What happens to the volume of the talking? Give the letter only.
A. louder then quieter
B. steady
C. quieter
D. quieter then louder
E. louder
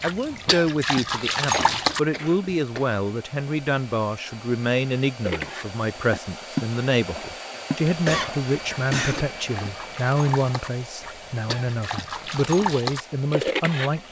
B.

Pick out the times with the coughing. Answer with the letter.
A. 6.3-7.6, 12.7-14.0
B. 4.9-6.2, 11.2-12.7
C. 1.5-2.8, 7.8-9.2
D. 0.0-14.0
C.